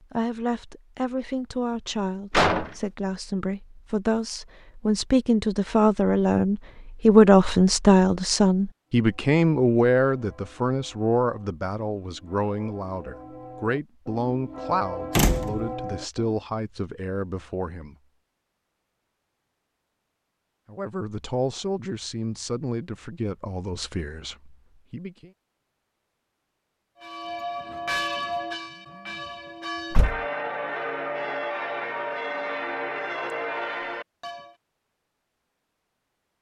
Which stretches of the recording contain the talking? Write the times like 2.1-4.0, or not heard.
0.0-17.9, 20.6-25.3.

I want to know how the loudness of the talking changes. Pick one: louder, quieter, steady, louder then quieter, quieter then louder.
louder then quieter.